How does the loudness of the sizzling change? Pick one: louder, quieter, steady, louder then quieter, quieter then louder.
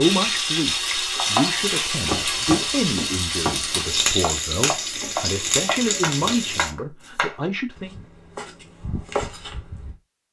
steady.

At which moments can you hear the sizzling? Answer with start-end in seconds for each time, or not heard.
0.0-6.7.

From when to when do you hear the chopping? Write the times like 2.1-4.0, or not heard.
0.7-9.9.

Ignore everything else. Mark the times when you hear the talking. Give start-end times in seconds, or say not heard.
0.0-8.0.